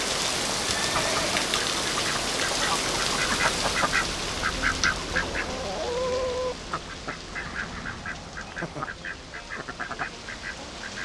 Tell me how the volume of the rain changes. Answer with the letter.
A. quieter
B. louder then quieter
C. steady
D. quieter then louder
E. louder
A.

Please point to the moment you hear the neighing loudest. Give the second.
1 s.